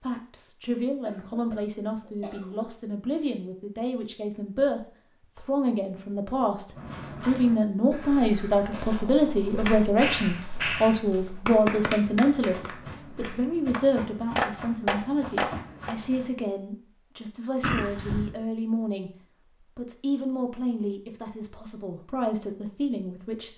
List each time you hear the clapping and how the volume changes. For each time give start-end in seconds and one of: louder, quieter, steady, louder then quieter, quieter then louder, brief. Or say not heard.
9.5-15.9 quieter then louder.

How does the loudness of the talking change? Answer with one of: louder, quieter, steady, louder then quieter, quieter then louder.
louder then quieter.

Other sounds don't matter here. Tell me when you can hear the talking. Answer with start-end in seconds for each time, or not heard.
0.0-23.5.